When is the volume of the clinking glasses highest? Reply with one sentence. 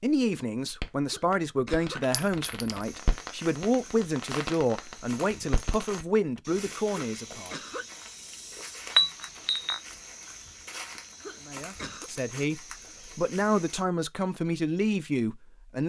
The volume of the clinking glasses peaks at 9 seconds.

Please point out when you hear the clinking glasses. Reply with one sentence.
You can hear the clinking glasses from 2.1 to 2.9 s and from 8.9 to 9.8 s.